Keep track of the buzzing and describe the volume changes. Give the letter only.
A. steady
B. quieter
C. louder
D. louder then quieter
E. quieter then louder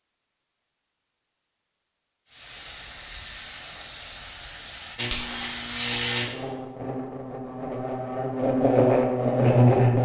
E.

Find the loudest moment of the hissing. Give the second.
6 s.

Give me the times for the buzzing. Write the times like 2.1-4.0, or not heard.
5.0-10.0.